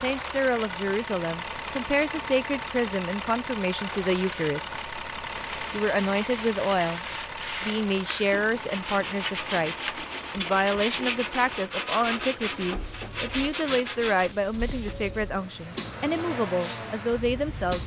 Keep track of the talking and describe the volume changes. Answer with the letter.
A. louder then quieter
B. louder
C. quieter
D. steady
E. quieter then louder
D.